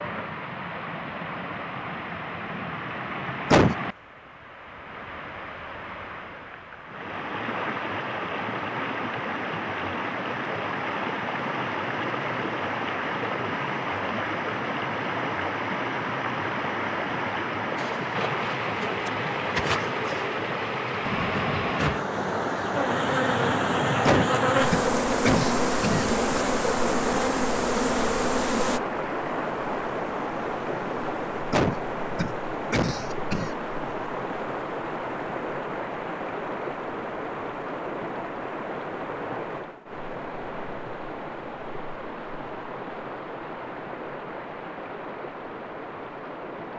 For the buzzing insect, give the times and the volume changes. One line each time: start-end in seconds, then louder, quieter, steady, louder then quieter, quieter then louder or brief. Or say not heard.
17.8-28.8 louder.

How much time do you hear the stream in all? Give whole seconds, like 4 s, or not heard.
47 s.